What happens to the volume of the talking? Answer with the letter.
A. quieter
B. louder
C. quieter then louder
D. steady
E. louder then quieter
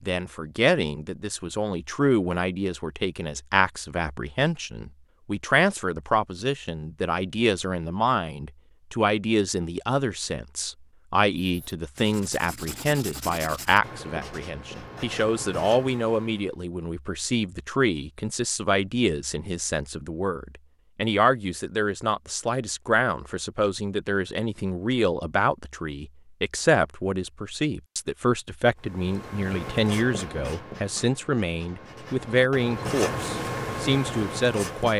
D.